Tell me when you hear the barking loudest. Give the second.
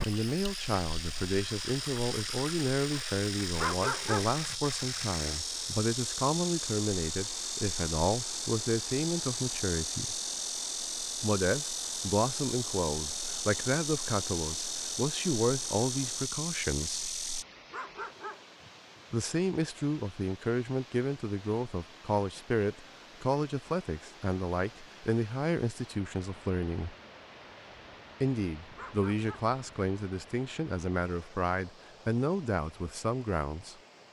4 s.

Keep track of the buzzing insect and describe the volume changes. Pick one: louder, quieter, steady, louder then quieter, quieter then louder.
steady.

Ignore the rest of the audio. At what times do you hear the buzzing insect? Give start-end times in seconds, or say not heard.
0.0-17.4.